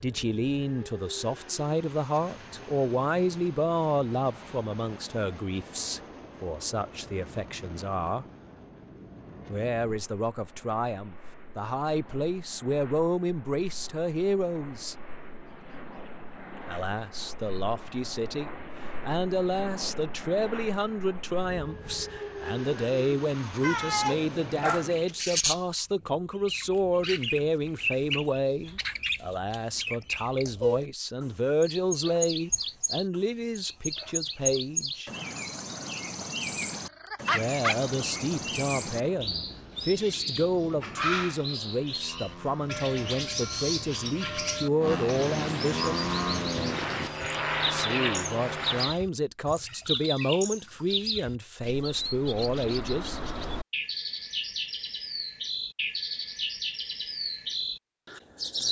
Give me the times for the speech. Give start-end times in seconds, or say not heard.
0.0-8.2, 9.4-14.9, 16.6-35.1, 37.3-46.0, 47.7-53.2.